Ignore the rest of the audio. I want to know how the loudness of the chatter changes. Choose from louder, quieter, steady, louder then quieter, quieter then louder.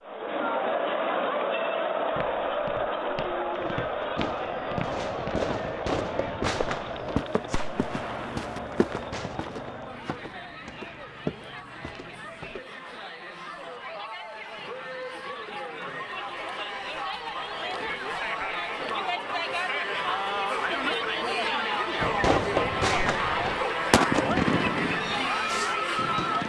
quieter then louder.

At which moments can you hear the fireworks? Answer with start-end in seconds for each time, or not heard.
3.5-9.4, 22.0-26.4.